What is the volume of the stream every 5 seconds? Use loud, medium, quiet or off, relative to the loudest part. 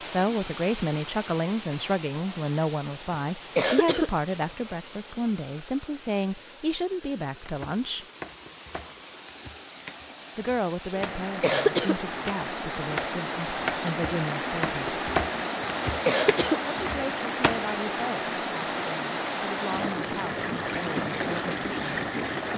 medium, quiet, loud, loud, loud.